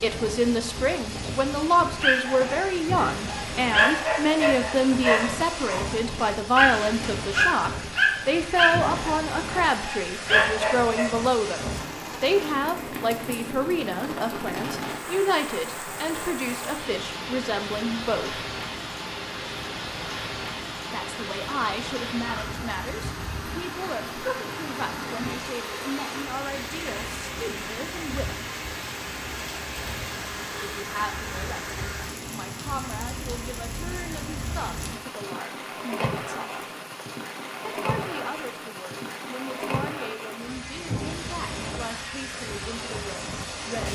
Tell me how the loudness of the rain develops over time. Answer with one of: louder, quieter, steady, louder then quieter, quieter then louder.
steady.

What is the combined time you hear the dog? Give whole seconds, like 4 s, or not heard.
9 s.